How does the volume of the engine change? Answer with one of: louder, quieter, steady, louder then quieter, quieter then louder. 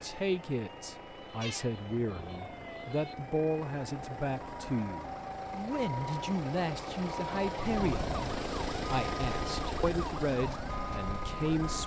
louder.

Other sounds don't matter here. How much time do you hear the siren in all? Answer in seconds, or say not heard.
12 s.